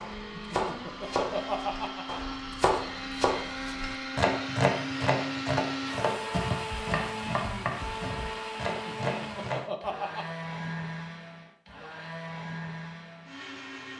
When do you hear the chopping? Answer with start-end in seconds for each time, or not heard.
0.0-9.6.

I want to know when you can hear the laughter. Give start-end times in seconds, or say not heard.
0.3-2.4, 8.7-10.2.